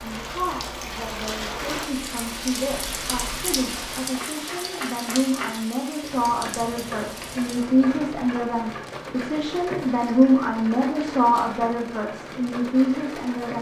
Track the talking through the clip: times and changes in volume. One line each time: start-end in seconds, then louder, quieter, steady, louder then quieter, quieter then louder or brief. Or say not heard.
0.0-13.5 louder.